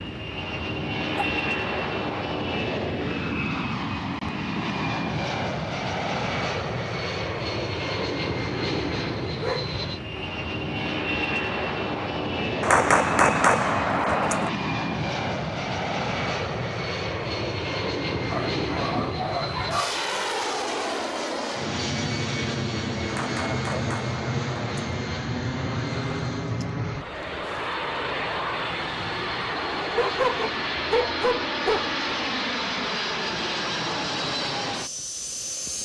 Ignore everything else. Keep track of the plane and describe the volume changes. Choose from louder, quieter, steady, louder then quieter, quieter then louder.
steady.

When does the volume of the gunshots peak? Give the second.
13 s.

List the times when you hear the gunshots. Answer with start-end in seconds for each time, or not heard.
12.6-14.5, 23.1-24.8.